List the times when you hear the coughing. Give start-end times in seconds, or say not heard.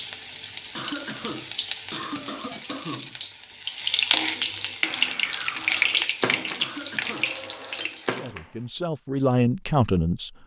0.8-3.2, 6.5-7.4.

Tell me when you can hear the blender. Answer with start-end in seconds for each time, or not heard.
4.8-8.6.